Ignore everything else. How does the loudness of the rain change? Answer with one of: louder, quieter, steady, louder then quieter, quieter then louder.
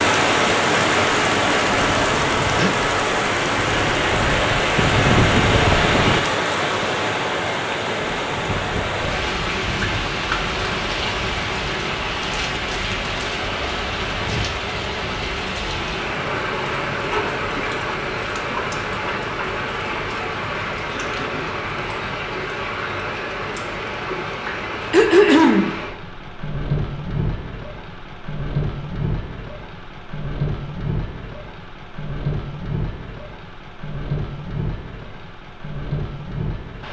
quieter.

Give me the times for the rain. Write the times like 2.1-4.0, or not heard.
0.0-36.8.